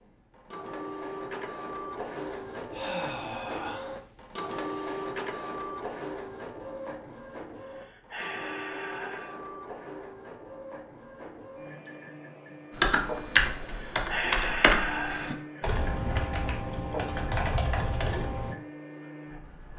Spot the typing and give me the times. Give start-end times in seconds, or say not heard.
12.7-18.6.